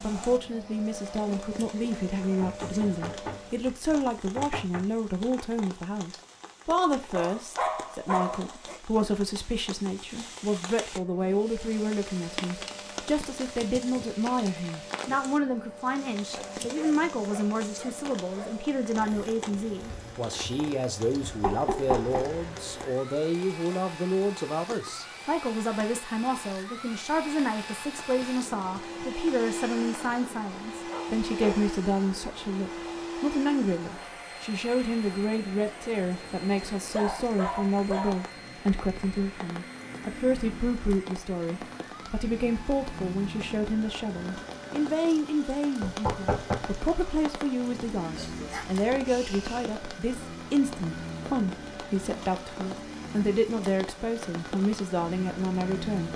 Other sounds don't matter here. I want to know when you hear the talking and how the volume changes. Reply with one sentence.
The talking can be heard from 0.0 to 56.1 s, at a steady volume.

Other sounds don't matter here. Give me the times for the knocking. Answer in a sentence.
You can hear the knocking from 2.2 to 4.8 s, from 21.4 to 22.4 s and from 45.8 to 46.6 s.